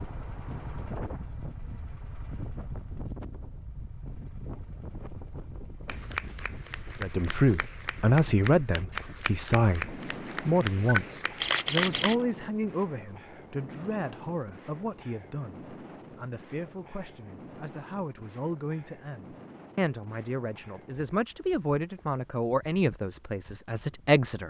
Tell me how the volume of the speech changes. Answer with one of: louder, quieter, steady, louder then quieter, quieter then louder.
quieter then louder.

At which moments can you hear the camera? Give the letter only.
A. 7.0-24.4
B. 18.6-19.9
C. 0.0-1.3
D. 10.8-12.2
D.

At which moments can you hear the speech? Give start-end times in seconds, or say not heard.
7.0-24.4.